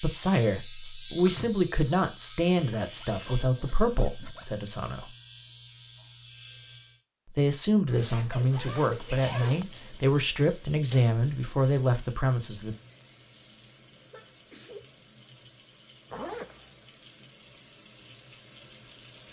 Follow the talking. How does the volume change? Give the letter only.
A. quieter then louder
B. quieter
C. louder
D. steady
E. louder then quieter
D.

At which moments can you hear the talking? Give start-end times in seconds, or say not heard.
0.0-5.0, 7.3-12.8.